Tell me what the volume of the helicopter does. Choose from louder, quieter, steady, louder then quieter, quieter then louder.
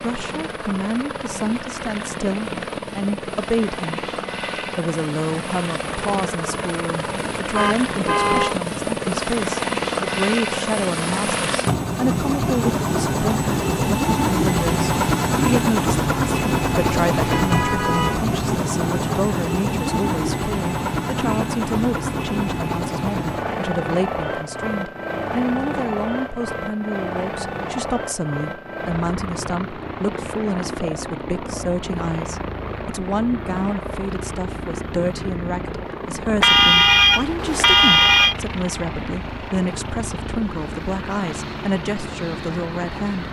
louder then quieter.